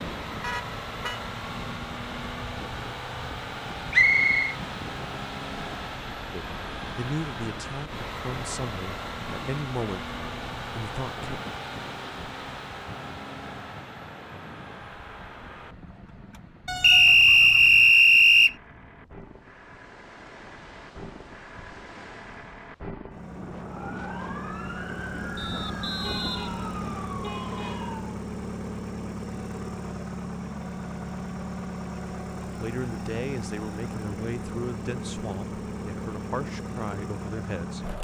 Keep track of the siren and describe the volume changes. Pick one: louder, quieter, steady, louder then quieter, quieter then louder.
steady.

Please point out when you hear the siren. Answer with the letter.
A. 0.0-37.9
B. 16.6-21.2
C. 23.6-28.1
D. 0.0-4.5
C.